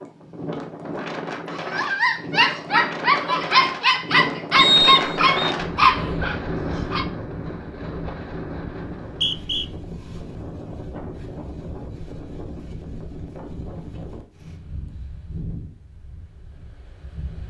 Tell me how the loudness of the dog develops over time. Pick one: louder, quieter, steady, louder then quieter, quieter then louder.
steady.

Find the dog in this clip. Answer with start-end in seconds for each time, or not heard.
1.5-7.0.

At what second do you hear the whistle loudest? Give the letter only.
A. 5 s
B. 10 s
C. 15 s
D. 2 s
A.